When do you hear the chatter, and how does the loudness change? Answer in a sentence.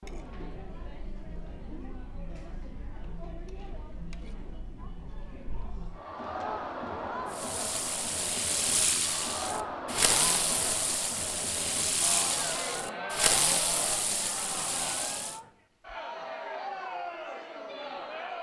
You can hear the chatter from 0.0 to 18.3 s, getting louder.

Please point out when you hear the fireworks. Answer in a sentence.
You can hear the fireworks from 7.3 to 15.4 s.